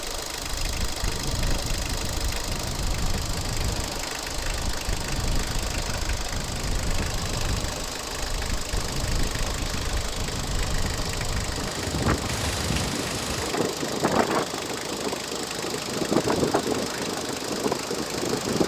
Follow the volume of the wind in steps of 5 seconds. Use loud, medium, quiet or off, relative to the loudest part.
medium, medium, loud, loud.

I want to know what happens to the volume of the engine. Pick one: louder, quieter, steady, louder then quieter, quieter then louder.
steady.